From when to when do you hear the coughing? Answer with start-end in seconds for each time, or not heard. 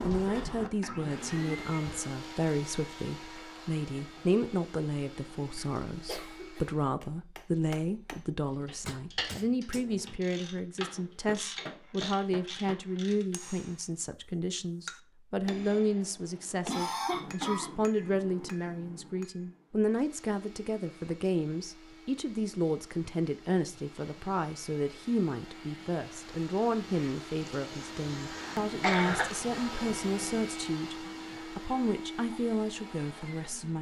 5.5-6.7, 16.6-17.7, 27.4-29.2.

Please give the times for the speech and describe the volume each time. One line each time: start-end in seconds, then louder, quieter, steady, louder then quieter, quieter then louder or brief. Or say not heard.
0.0-33.7 steady.